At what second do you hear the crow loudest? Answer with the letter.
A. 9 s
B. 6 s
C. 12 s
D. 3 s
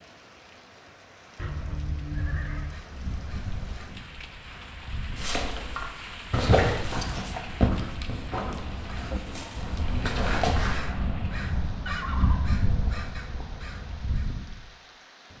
C.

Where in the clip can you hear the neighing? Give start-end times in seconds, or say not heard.
1.4-2.8, 11.8-12.5.